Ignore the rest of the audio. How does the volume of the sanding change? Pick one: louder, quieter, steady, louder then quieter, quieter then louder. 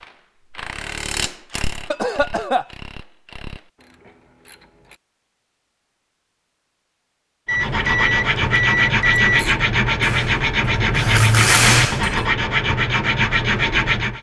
steady.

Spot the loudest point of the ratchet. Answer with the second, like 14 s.
12 s.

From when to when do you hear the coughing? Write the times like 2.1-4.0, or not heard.
1.9-2.6.